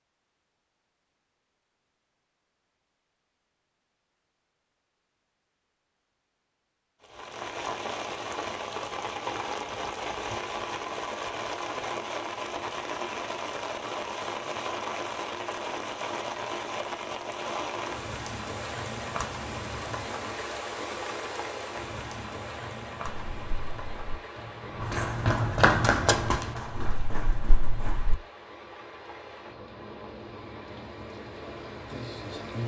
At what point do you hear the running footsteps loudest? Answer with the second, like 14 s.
26 s.